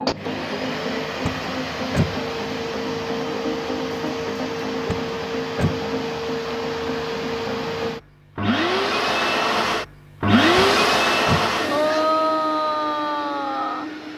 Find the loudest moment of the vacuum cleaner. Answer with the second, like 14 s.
11 s.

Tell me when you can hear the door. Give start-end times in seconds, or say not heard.
1.2-2.1, 4.8-5.8, 10.6-11.5.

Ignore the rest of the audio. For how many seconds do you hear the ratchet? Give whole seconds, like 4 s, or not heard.
not heard.